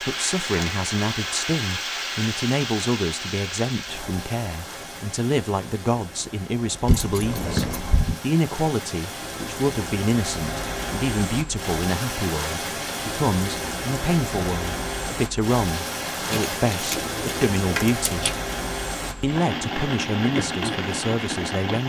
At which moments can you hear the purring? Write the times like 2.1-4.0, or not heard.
not heard.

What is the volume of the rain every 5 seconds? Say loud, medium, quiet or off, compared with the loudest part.
loud, medium, loud, loud, loud.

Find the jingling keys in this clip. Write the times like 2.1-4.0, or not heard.
6.8-8.2, 16.3-18.3.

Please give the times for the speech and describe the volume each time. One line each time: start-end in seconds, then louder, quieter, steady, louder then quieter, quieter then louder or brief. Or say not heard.
0.1-18.3 steady
19.2-21.8 brief.